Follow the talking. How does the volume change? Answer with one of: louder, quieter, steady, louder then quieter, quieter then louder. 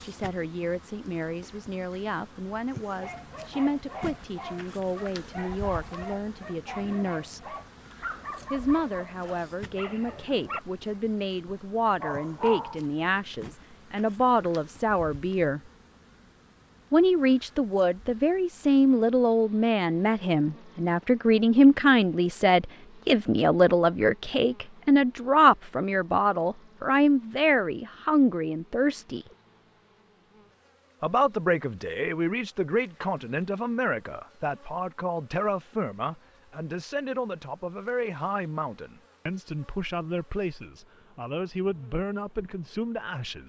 louder then quieter.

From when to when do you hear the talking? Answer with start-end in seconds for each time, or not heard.
0.0-7.5, 8.5-15.6, 16.9-29.2, 31.0-43.4.